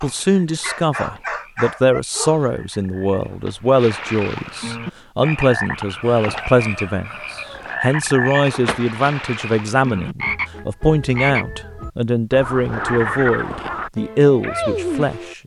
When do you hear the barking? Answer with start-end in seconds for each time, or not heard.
0.0-2.5.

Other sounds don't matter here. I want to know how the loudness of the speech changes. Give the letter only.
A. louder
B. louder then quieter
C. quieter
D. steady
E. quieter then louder
D.